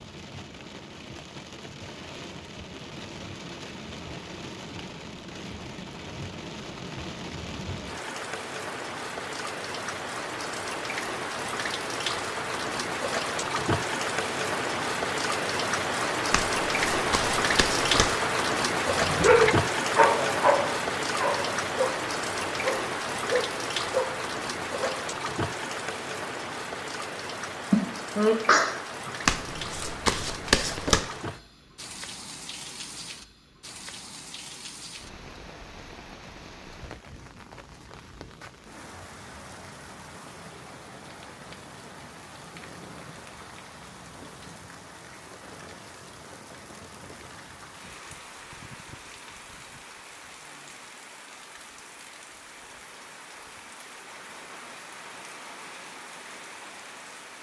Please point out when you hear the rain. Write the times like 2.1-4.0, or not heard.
0.0-57.3.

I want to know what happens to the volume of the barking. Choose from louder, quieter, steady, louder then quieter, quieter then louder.
quieter.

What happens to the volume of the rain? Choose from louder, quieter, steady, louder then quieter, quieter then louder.
louder then quieter.